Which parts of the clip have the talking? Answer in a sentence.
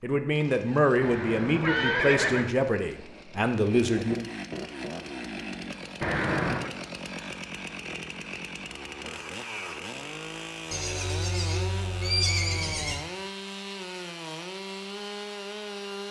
You can hear the talking from 0.0 to 4.2 s.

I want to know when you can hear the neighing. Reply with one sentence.
You can hear the neighing from 1.0 to 2.5 s, from 6.0 to 6.7 s and from 10.7 to 13.1 s.